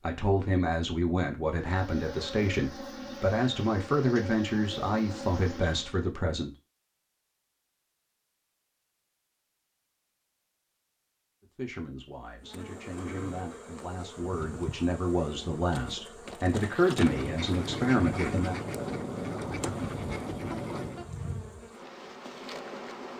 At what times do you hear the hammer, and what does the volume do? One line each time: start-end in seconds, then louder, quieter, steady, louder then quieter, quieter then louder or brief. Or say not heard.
not heard.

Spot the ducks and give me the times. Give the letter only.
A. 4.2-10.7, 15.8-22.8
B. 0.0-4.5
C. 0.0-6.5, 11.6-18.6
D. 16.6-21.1
D.